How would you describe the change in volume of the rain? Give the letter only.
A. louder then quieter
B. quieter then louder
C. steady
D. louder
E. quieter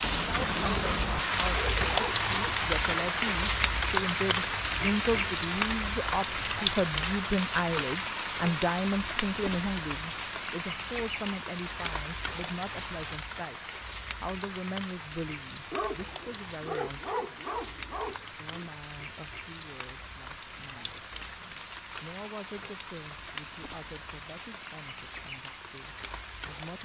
E.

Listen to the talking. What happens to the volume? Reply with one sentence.
The loudness of the talking goes down.